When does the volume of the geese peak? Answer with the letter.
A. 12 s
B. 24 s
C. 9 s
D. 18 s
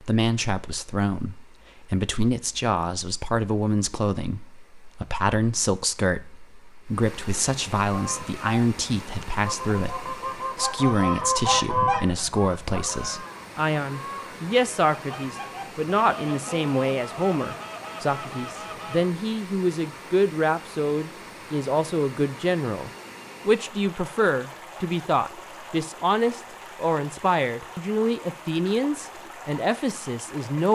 A.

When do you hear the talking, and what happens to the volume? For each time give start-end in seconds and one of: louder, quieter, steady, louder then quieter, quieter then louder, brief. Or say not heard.
0.0-30.7 steady.